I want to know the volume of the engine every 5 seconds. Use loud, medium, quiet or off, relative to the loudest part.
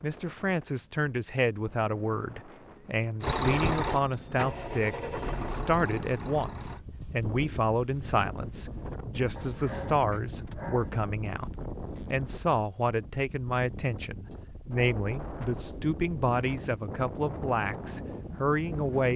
loud, medium, off, off.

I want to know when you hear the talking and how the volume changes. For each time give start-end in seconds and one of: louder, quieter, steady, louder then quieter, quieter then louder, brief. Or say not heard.
0.0-19.1 steady.